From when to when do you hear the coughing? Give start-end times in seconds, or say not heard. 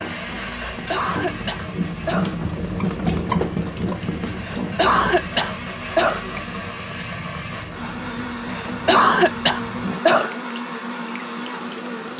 0.7-2.4, 4.3-6.2, 8.4-10.3.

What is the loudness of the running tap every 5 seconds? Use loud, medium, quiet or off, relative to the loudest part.
loud, medium, quiet.